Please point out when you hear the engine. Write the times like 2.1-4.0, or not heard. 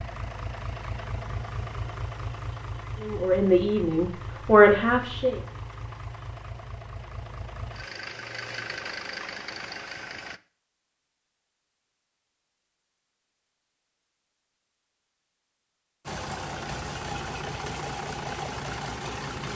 0.0-10.4, 16.1-19.5.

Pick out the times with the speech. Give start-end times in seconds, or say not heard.
3.0-5.4.